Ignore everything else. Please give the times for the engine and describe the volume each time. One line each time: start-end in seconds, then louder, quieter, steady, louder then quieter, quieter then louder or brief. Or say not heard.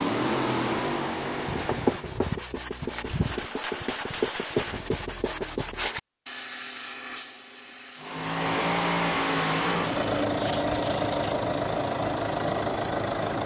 0.0-2.2 brief
8.0-13.4 steady.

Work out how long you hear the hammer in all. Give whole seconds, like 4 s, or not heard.
2 s.